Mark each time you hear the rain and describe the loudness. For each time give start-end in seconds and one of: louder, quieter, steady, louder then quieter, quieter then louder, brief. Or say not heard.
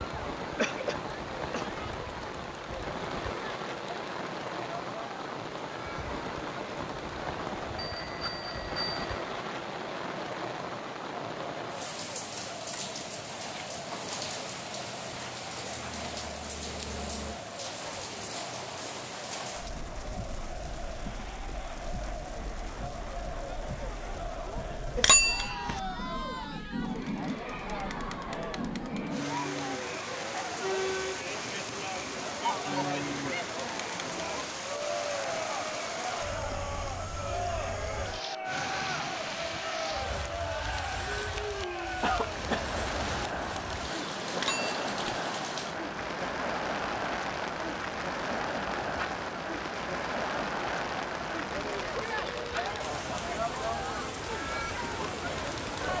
0.0-55.9 steady.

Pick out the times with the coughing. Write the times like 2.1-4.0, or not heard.
0.6-1.6, 42.0-43.4.